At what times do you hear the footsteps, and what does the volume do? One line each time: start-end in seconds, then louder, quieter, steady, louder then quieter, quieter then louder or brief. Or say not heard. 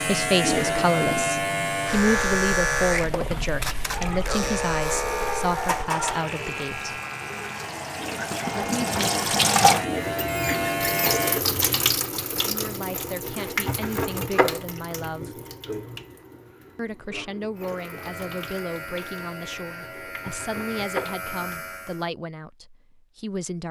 not heard.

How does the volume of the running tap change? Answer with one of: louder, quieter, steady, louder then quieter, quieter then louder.
louder then quieter.